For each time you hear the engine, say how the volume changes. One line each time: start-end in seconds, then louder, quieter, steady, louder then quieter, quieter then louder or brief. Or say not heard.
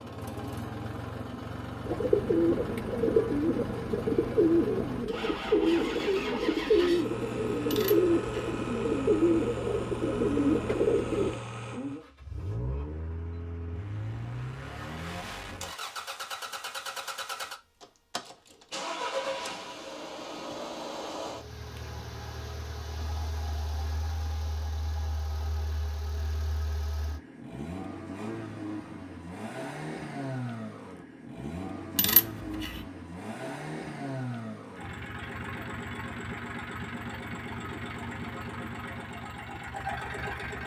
0.0-40.6 steady.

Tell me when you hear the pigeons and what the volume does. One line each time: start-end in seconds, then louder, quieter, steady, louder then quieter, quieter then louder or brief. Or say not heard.
1.9-11.4 steady.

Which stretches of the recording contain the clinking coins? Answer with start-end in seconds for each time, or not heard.
7.7-8.5, 31.9-32.8.